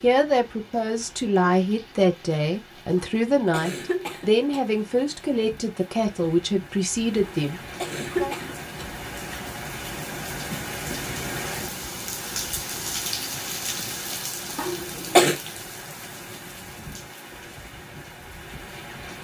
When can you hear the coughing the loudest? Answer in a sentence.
The loudest moment of the coughing is at 15 seconds.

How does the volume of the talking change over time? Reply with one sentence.
The volume of the talking stays about the same.